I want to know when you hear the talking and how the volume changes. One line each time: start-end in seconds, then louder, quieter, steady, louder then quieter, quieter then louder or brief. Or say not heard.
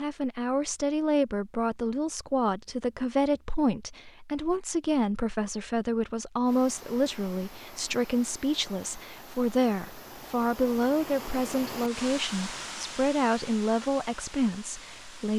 0.0-15.3 steady.